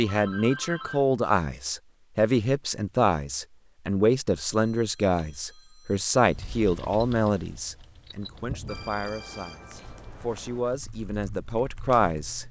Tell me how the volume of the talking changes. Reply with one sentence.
The volume of the talking goes down, then up.